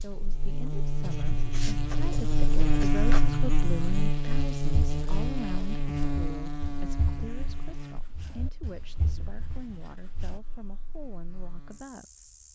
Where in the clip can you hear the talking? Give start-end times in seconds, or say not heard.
0.0-12.3.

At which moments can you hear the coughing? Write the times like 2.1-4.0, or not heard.
not heard.